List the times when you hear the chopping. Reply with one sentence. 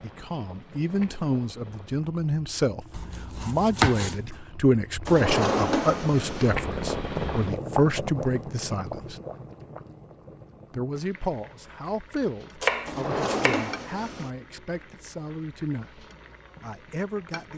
You can hear the chopping from 2.9 to 4.4 s and from 12.6 to 13.8 s.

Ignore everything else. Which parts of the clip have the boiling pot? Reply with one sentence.
You can hear the boiling pot from 0.0 to 17.5 s.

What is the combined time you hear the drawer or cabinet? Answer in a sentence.
The drawer or cabinet can be heard for 3 seconds in total.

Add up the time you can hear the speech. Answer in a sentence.
You can hear the speech for 16 seconds altogether.